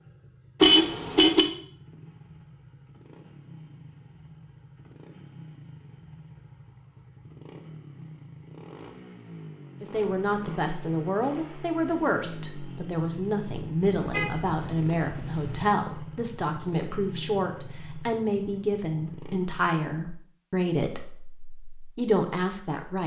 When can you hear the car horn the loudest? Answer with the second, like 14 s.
1 s.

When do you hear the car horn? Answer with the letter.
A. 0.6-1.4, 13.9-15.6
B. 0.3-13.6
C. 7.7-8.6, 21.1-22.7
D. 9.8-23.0
A.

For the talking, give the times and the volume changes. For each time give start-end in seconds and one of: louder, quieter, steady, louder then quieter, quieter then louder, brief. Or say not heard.
9.8-23.0 steady.